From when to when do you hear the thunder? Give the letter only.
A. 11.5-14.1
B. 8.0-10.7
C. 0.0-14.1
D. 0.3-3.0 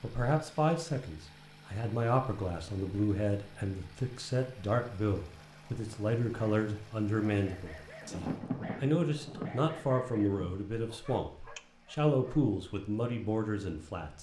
B.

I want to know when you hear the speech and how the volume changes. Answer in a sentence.
You can hear the speech from 0.0 to 14.1 s, at a steady volume.